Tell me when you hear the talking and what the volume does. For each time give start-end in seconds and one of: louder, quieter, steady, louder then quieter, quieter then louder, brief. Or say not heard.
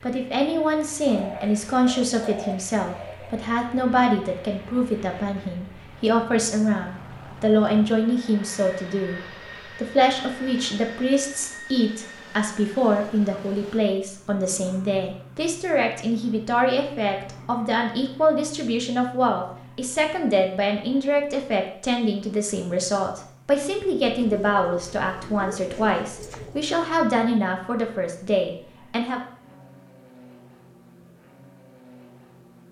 0.0-29.2 steady.